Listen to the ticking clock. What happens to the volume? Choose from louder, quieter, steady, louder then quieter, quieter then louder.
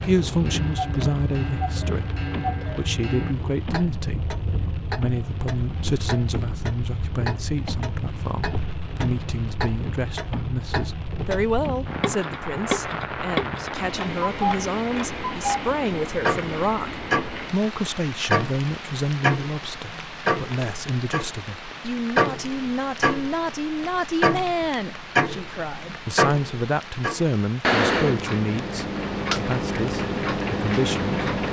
louder.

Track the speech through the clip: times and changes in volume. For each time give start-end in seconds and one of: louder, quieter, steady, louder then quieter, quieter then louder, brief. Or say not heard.
0.0-31.1 steady.